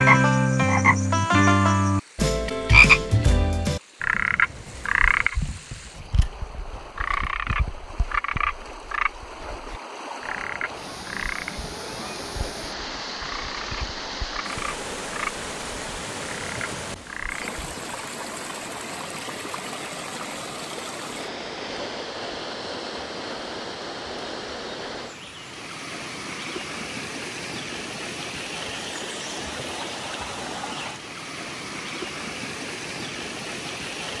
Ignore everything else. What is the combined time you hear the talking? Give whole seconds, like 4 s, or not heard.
not heard.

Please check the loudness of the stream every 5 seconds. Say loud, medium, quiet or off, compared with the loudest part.
quiet, medium, loud, loud, loud, loud, loud.